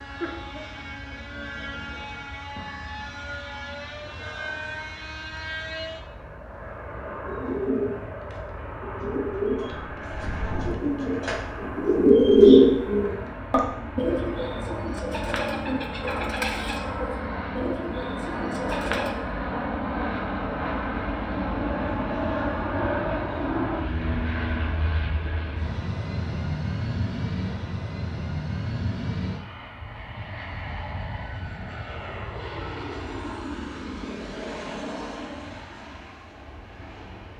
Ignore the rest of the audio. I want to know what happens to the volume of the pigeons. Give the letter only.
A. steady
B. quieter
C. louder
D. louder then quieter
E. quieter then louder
D.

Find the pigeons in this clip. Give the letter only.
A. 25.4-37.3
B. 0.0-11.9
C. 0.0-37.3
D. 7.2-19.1
D.